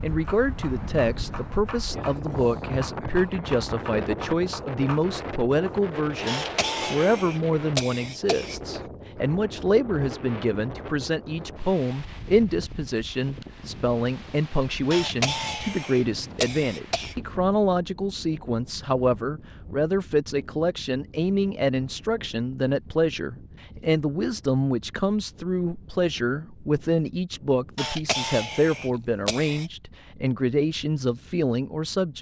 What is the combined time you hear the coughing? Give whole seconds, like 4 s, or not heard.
7 s.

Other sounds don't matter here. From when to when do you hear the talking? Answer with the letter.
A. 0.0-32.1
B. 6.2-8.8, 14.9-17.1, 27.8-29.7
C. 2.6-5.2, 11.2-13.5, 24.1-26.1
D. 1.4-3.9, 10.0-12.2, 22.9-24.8
A.